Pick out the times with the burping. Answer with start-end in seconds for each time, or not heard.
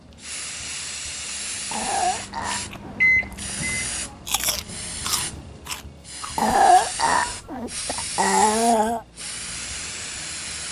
1.7-3.4, 6.3-9.0.